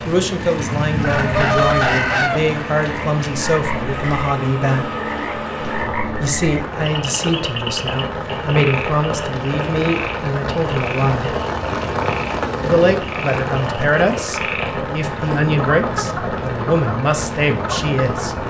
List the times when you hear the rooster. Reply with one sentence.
You can hear the rooster from 0.9 to 2.5 s.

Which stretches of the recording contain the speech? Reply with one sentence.
The speech can be heard from 0.1 to 4.8 s, from 6.2 to 11.3 s and from 12.6 to 18.4 s.